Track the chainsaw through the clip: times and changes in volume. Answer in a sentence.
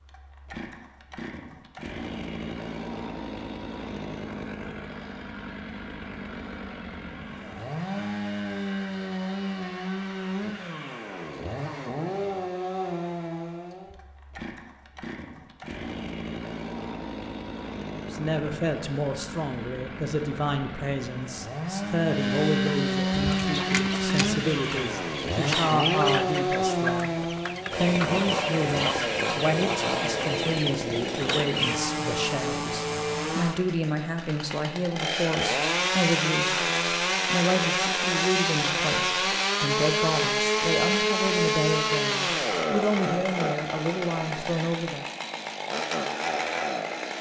The chainsaw can be heard from 0.0 to 47.1 s, getting louder.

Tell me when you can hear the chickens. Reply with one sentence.
The chickens can be heard from 23.4 to 31.8 s.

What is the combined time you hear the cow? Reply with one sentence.
The cow can't be heard in this clip.